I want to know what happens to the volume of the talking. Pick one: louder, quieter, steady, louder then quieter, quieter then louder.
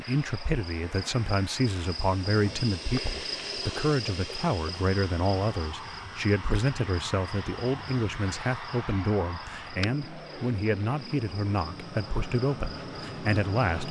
steady.